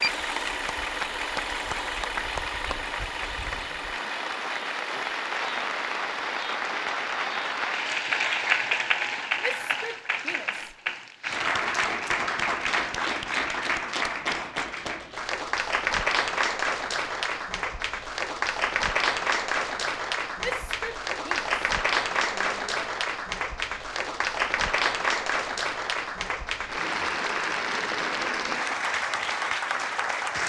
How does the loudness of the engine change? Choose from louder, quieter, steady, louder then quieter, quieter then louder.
quieter.